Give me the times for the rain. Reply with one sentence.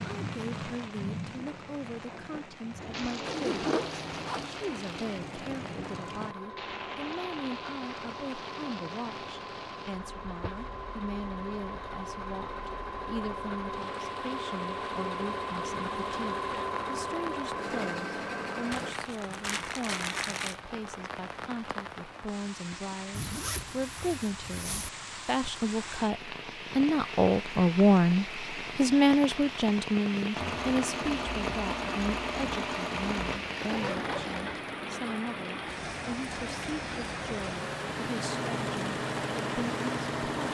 The rain can be heard from 0.0 to 40.4 s.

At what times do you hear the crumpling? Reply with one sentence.
The crumpling can be heard from 18.7 to 20.6 s.